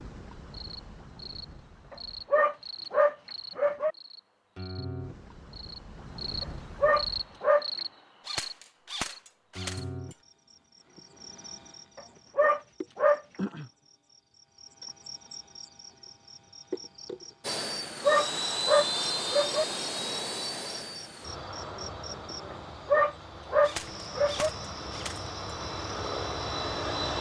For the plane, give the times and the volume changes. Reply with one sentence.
You can hear the plane from 17.4 to 27.1 s, getting quieter then louder.